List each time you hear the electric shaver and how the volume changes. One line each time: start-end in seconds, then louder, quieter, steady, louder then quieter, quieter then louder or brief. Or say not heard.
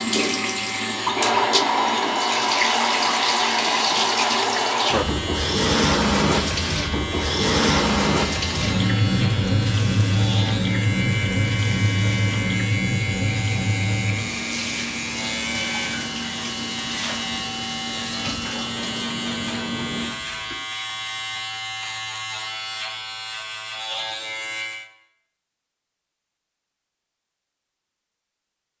0.0-24.9 steady.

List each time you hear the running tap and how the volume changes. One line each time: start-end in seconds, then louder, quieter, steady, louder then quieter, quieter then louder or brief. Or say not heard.
0.0-20.6 quieter.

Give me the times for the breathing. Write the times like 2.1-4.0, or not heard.
not heard.